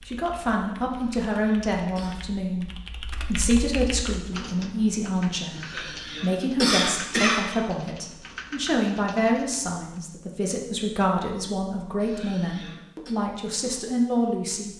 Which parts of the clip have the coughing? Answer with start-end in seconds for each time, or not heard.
0.9-2.1, 5.5-7.5, 11.9-13.2.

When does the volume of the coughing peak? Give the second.
7 s.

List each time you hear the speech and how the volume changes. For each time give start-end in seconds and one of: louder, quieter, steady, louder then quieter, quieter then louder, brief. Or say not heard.
0.1-14.7 steady.